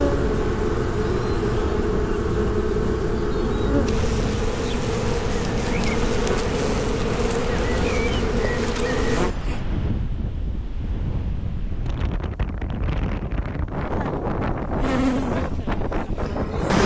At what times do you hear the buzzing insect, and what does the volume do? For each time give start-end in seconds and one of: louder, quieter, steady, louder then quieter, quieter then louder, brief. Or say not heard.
0.0-9.6 steady
14.8-16.8 brief.